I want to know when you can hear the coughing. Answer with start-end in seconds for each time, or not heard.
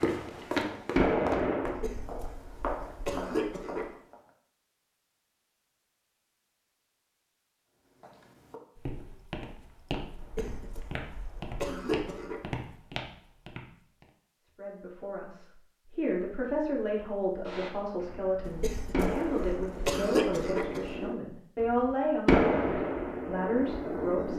1.6-3.9, 10.2-12.4, 18.4-21.1.